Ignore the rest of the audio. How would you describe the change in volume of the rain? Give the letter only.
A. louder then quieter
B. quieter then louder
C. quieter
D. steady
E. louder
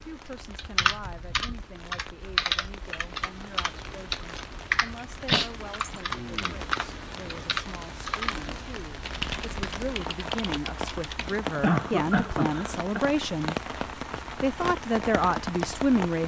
E.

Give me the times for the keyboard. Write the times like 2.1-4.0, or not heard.
0.6-8.4, 9.0-11.4.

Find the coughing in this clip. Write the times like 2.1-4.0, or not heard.
5.3-6.0, 11.2-13.0.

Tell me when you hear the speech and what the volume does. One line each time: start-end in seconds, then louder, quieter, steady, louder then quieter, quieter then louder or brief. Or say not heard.
0.0-13.6 louder
14.3-16.2 brief.